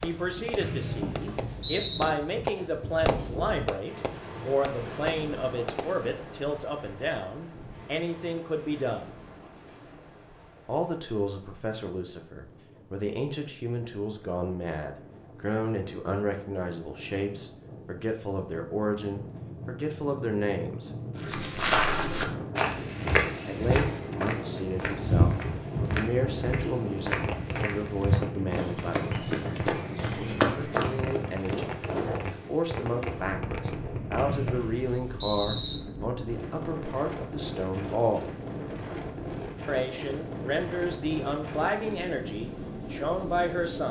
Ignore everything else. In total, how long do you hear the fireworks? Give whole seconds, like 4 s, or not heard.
14 s.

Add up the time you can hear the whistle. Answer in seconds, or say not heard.
3 s.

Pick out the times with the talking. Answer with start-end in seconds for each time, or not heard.
0.0-9.2, 10.7-20.9, 23.4-29.1, 30.1-38.2, 39.6-43.8.